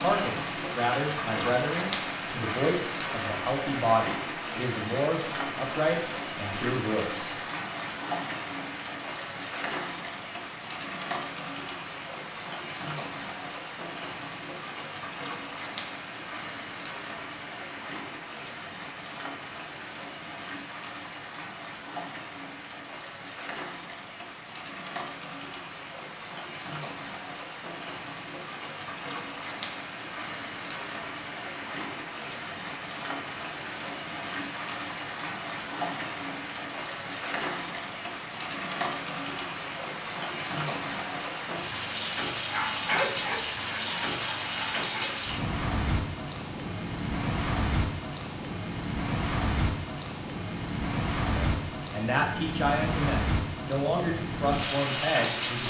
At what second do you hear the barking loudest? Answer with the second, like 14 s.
43 s.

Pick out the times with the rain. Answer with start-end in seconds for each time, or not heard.
0.0-55.6.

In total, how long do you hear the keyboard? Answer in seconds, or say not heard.
not heard.